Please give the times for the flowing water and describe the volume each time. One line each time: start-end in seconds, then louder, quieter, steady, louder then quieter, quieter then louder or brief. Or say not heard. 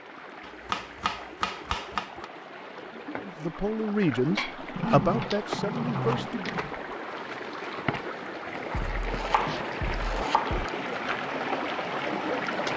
0.0-12.7 louder.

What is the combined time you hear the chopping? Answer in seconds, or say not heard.
6 s.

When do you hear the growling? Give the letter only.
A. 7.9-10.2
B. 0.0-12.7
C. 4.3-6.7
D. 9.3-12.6
C.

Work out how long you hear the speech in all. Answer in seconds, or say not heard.
3 s.